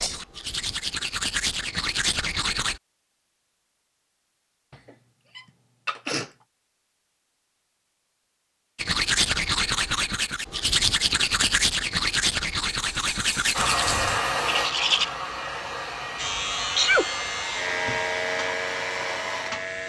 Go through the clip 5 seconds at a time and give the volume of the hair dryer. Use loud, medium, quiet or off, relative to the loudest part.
off, off, loud, medium.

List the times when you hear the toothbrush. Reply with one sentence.
The toothbrush can be heard from 0.0 to 2.8 s and from 8.8 to 15.1 s.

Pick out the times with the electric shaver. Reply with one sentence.
The electric shaver can be heard from 16.1 to 19.8 s.